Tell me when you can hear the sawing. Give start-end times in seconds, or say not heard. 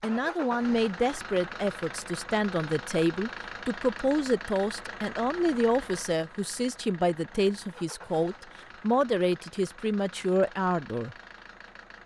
not heard.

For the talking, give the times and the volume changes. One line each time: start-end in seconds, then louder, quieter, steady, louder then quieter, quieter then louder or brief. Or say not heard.
0.0-11.2 steady.